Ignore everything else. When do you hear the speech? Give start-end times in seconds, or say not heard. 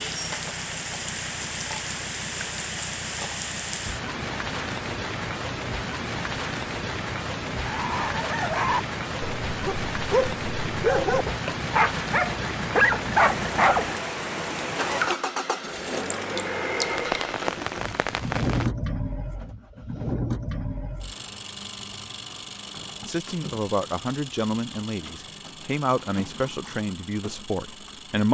23.0-28.2.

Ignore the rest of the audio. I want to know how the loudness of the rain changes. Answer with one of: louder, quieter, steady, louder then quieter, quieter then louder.
steady.